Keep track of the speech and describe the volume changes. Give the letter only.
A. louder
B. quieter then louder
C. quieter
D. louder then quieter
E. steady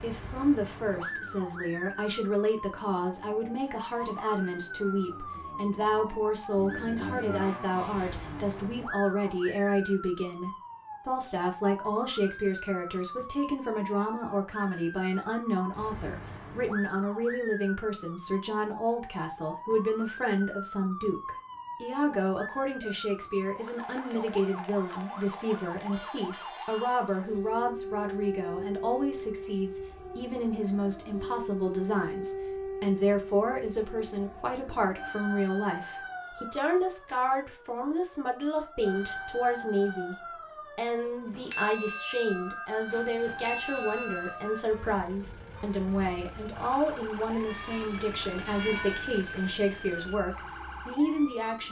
E.